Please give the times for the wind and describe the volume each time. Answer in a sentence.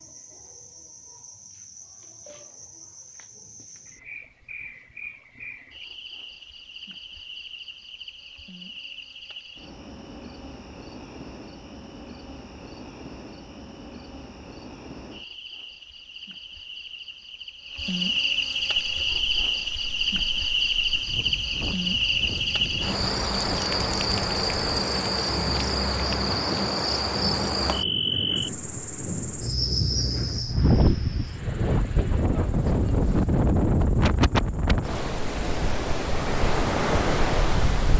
The wind can be heard from 19.0 to 37.9 s, getting louder.